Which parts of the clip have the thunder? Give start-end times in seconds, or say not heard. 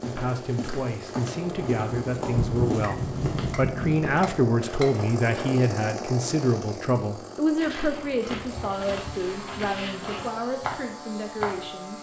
1.4-4.2.